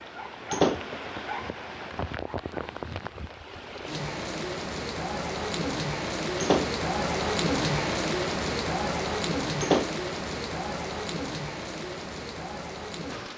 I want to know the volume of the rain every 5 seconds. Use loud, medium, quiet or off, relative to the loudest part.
medium, loud, medium.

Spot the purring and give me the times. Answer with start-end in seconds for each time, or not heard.
not heard.